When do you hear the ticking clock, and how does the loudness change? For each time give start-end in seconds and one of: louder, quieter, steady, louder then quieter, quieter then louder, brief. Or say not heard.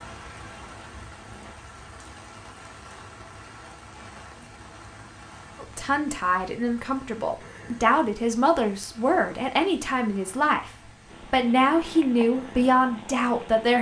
not heard.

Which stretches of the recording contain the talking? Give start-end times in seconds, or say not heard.
5.6-13.7.